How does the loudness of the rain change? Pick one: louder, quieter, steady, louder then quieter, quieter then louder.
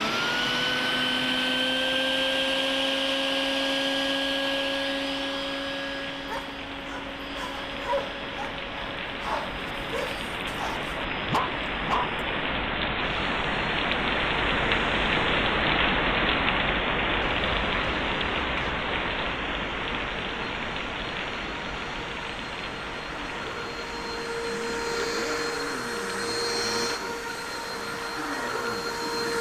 louder then quieter.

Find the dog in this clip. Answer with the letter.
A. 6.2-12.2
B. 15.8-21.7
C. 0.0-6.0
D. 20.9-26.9
A.